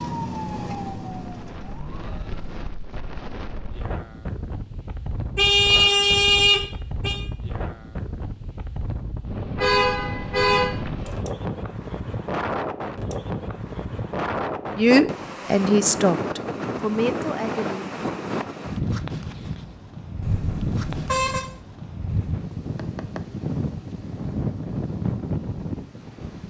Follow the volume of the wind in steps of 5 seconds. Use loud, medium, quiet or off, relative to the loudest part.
medium, medium, loud, loud, loud, loud.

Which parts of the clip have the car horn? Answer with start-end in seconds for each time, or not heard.
5.3-7.2, 9.6-10.8, 20.2-21.4.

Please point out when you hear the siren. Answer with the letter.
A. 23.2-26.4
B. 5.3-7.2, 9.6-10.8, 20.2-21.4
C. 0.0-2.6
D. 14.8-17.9
C.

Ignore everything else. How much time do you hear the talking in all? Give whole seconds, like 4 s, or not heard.
3 s.